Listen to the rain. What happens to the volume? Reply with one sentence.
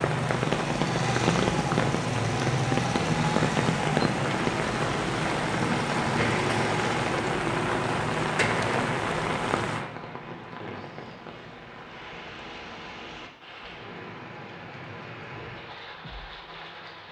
The loudness of the rain goes down.